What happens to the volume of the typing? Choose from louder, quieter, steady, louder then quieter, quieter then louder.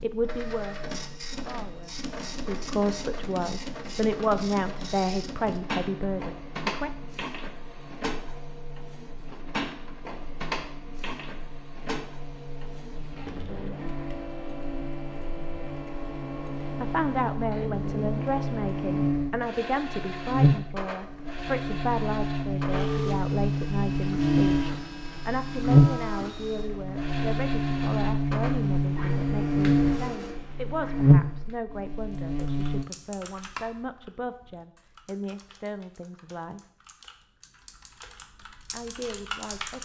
quieter then louder.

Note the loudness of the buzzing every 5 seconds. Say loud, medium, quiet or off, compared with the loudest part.
quiet, quiet, quiet, medium, loud, loud, loud, off.